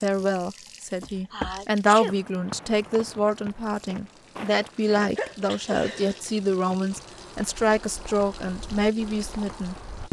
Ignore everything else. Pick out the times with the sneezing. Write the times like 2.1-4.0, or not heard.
1.3-2.1, 5.2-6.2.